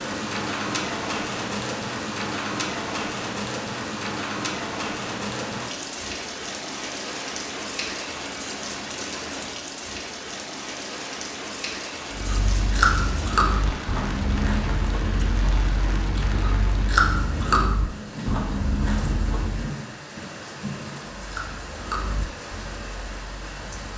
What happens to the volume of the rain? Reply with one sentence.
The loudness of the rain goes down.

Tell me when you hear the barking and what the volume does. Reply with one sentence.
You can't hear the barking here.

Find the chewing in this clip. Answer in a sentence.
You can hear the chewing from 12.1 to 19.7 s and from 21.1 to 23.9 s.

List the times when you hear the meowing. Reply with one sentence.
The meowing can't be heard in this clip.